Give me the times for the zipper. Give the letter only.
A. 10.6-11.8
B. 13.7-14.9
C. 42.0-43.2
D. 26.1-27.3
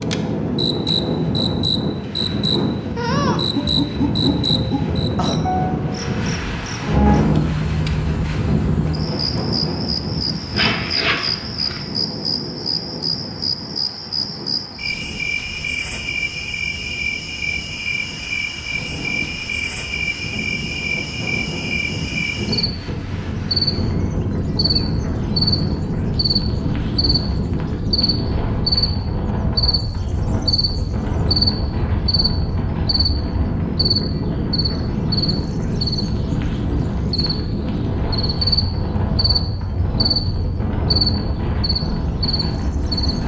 A.